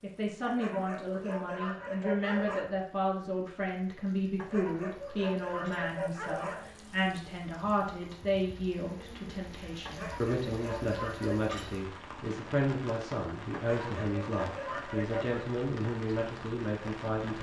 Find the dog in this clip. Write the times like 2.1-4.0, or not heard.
0.5-2.8, 4.3-6.7, 9.8-11.6, 13.5-15.4.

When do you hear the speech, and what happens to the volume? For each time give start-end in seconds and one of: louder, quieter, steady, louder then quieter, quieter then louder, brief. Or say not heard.
0.0-17.3 steady.